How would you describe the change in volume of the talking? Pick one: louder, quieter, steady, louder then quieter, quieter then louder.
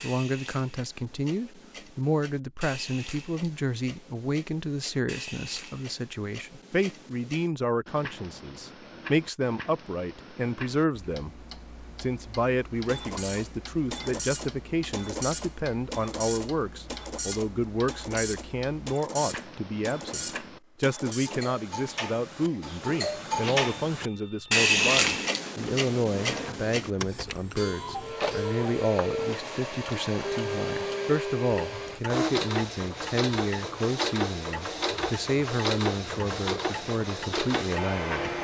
steady.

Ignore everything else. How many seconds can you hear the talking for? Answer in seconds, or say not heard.
38 s.